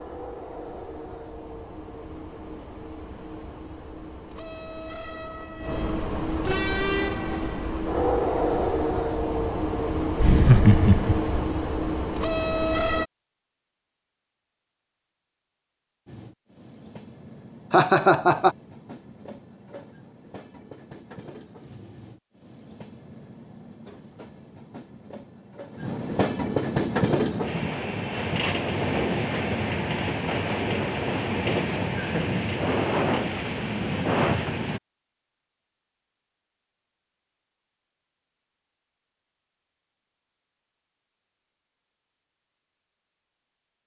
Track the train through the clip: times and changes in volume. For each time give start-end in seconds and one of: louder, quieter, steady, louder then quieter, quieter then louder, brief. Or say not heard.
0.0-13.1 louder
16.1-34.8 louder.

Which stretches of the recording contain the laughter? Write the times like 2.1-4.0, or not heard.
10.2-11.3, 17.7-18.6, 31.9-32.4.